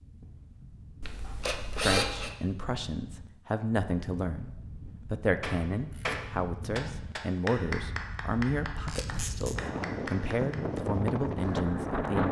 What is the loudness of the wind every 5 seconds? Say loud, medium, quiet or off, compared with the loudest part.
quiet, medium, loud.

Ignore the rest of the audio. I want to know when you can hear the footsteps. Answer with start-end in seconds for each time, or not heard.
not heard.